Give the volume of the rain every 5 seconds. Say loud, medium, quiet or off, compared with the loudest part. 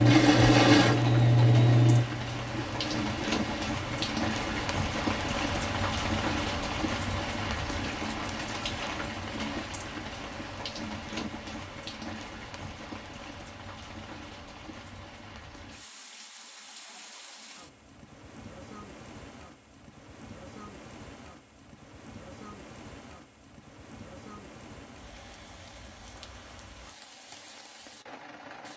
loud, loud, medium, quiet, quiet, quiet.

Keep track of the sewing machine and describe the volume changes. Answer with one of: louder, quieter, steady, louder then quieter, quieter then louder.
quieter.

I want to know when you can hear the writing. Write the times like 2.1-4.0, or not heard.
not heard.